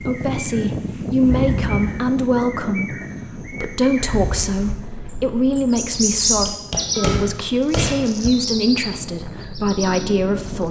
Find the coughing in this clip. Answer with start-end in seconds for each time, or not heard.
1.2-2.0, 6.9-8.0.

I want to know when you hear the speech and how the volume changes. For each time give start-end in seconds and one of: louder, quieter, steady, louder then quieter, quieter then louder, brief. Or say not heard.
0.0-10.6 steady.